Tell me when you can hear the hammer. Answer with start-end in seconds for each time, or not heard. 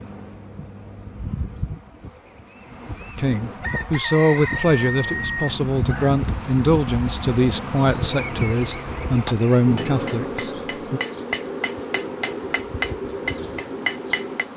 9.1-14.4.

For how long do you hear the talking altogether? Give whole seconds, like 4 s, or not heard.
8 s.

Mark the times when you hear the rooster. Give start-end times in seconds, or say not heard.
3.6-6.2.